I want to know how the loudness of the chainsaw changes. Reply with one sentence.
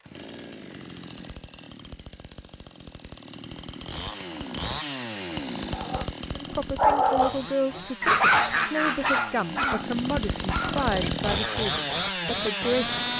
The volume of the chainsaw goes up.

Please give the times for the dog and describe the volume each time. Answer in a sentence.
The dog can be heard from 5.6 to 12.0 s, getting quieter.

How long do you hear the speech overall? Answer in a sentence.
You can hear the speech for 7 seconds altogether.